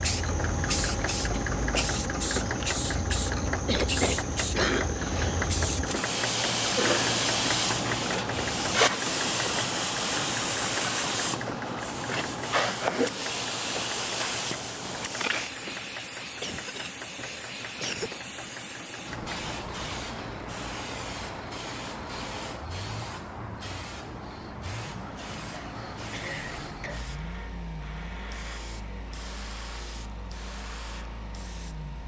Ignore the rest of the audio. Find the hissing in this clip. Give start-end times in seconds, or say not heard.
0.0-32.0.